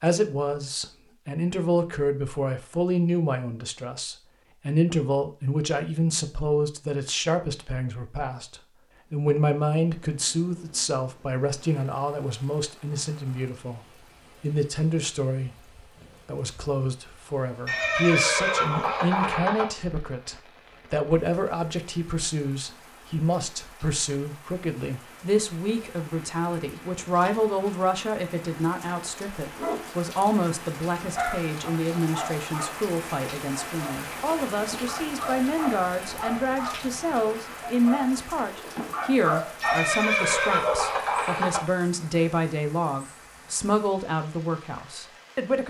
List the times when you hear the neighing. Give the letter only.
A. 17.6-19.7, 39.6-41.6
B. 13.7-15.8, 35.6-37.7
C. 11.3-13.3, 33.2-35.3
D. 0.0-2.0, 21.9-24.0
A.